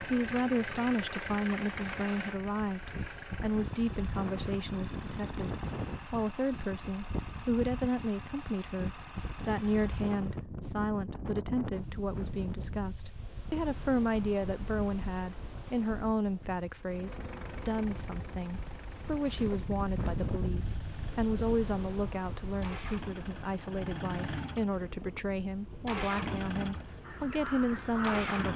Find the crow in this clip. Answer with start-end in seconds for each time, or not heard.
27.0-28.5.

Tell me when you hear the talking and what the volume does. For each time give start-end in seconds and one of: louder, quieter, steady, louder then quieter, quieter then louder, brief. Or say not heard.
0.0-28.5 steady.